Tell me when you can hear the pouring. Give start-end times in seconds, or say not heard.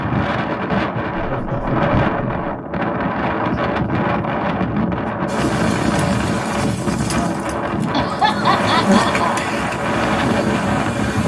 not heard.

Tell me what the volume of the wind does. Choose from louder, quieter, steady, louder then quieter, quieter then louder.
steady.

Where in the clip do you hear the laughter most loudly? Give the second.
8 s.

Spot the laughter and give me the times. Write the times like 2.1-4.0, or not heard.
1.1-2.5, 7.9-9.4.